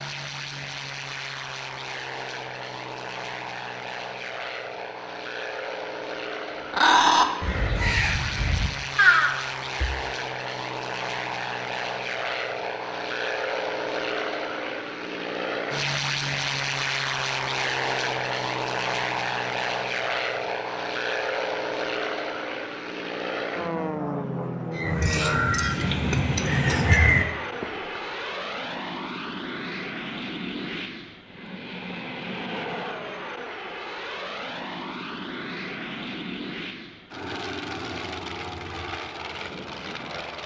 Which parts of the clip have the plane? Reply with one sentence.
The plane can be heard from 0.0 to 40.4 s.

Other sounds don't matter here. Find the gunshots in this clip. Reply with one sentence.
The gunshots can't be heard in this clip.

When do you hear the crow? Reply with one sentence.
The crow can be heard from 6.7 to 10.0 s and from 24.7 to 28.0 s.